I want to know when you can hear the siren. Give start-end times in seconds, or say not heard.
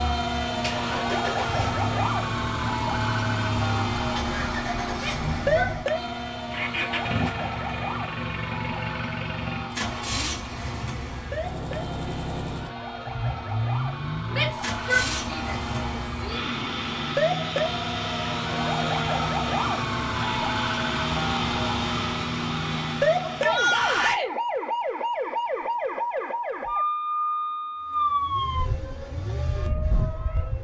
0.0-30.5.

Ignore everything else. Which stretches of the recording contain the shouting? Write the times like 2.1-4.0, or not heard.
5.0-6.0, 14.3-16.6, 23.2-24.2.